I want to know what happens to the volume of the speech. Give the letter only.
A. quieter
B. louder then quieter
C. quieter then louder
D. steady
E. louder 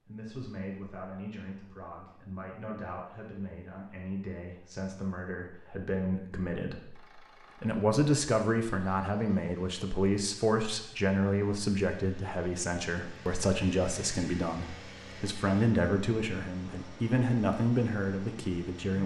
E.